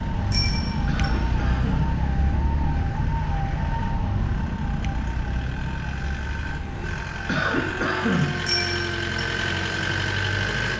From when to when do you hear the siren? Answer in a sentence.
The siren can be heard from 0.0 to 10.5 s.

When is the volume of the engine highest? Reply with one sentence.
The volume of the engine peaks at 10 seconds.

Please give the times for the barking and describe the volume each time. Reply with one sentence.
The barking can't be heard in this clip.